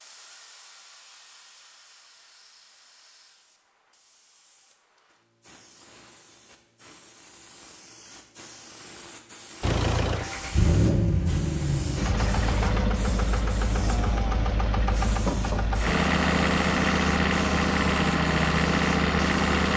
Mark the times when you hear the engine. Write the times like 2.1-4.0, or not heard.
9.6-19.7.